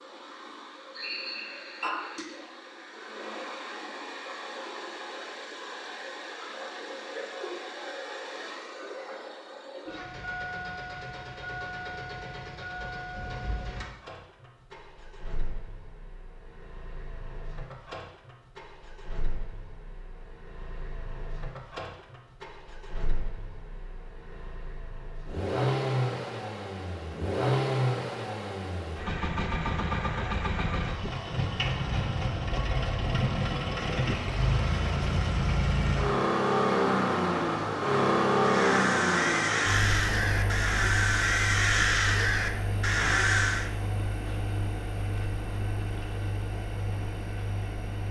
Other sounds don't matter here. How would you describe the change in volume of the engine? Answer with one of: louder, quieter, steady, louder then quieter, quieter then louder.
louder.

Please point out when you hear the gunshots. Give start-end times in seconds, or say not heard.
not heard.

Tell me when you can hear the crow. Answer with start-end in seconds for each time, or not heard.
38.4-43.7.